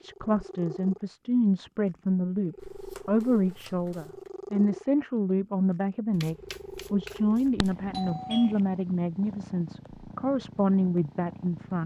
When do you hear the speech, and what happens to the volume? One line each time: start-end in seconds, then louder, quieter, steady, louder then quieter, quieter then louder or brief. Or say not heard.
0.0-11.8 steady.